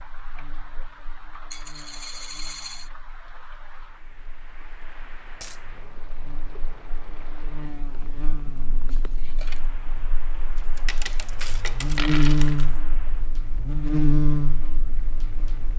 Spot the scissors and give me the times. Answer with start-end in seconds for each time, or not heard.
8.8-9.7.